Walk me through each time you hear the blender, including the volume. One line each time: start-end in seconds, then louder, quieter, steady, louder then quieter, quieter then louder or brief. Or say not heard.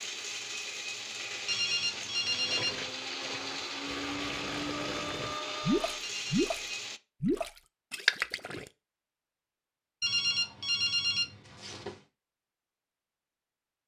0.0-7.0 steady.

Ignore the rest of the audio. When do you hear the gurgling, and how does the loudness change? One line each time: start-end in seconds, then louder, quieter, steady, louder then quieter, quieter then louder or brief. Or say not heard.
2.3-6.6 louder
7.2-8.7 brief.